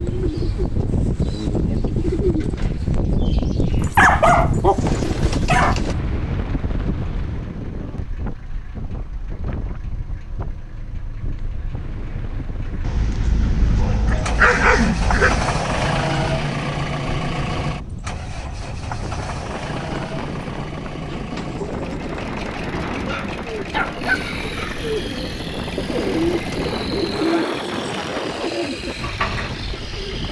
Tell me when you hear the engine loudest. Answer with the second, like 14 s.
16 s.